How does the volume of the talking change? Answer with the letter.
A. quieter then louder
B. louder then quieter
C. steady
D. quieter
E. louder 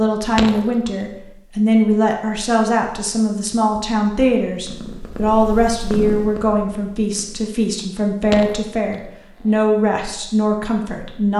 C.